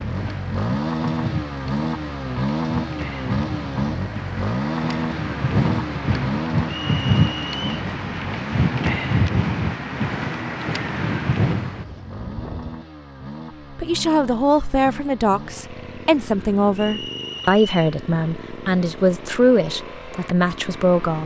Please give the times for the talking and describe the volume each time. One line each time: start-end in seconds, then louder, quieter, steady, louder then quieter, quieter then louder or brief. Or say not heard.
13.7-21.2 steady.